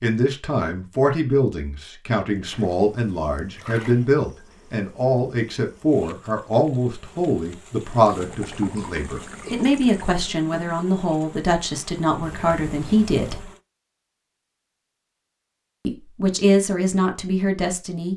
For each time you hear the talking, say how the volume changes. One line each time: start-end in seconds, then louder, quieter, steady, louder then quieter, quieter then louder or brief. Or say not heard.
0.0-13.5 steady
15.8-18.1 brief.